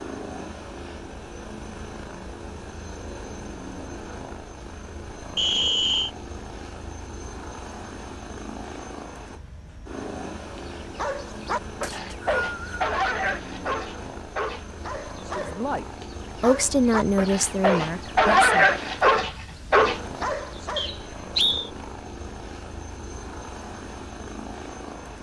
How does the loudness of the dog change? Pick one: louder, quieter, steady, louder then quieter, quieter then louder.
quieter then louder.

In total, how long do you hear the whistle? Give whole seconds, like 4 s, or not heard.
3 s.